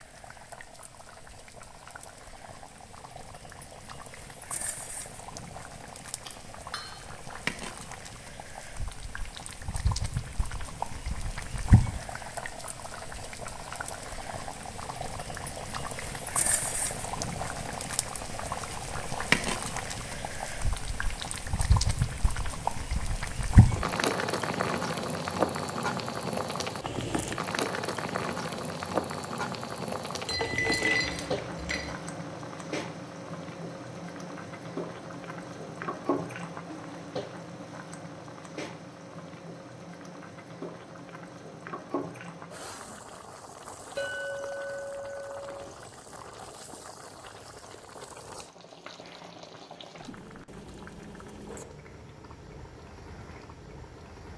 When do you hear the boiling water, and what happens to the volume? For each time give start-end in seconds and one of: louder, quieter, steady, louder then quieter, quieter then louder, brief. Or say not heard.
0.0-54.3 louder then quieter.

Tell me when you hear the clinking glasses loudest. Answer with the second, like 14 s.
31 s.